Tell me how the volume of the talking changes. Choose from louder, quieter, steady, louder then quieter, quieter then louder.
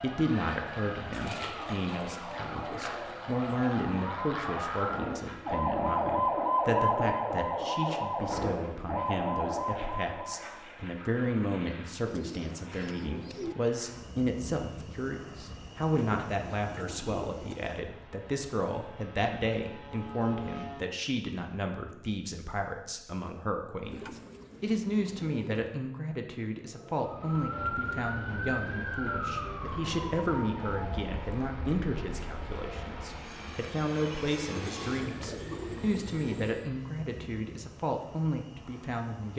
steady.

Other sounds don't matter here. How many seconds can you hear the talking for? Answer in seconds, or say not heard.
39 s.